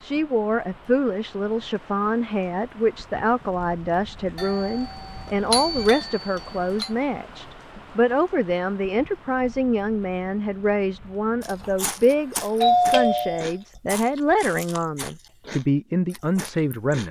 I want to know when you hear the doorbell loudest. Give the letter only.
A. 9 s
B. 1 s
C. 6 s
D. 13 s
D.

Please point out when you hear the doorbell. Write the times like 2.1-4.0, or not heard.
4.3-6.9, 12.6-13.5.